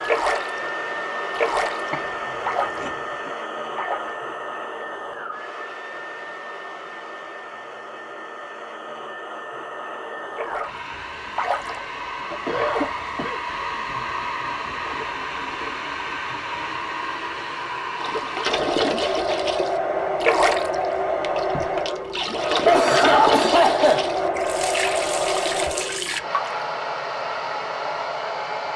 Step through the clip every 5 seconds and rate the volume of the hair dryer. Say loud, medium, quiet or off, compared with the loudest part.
medium, medium, medium, loud, loud, loud.